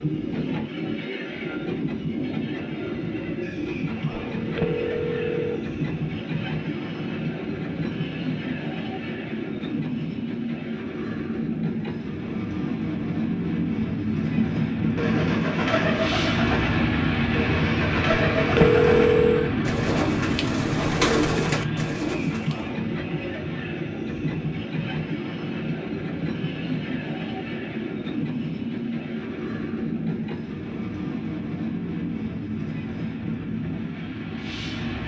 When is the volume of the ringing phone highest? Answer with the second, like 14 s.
19 s.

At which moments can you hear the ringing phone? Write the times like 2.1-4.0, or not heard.
4.1-5.6, 18.1-19.6.